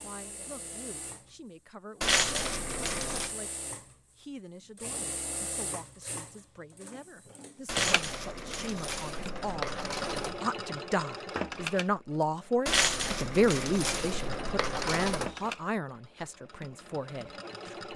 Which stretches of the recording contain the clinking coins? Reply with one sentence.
You can hear the clinking coins from 2.0 to 3.3 s, from 7.7 to 10.4 s and from 12.7 to 15.3 s.